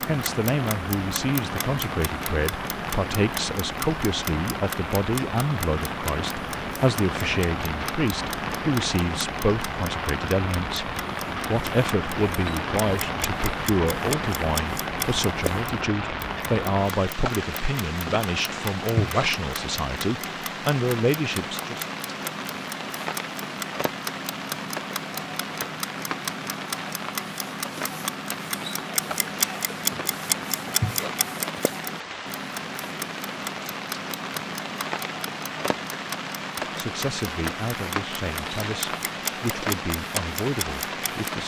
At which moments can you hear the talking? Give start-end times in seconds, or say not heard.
0.1-21.9, 36.5-41.4.